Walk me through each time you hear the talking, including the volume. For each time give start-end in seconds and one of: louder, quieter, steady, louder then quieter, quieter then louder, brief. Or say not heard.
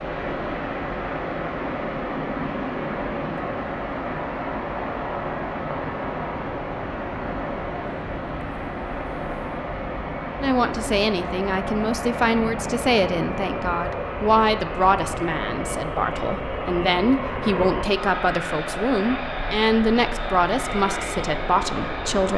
10.4-22.3 steady.